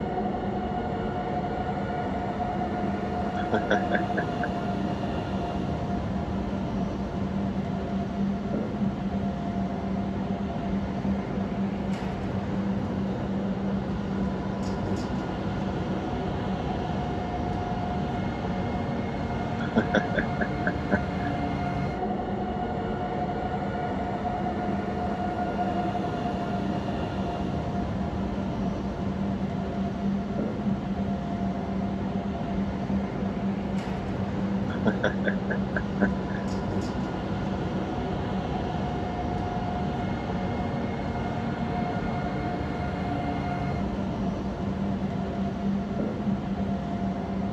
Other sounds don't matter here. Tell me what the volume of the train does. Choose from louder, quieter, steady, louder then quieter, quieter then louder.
steady.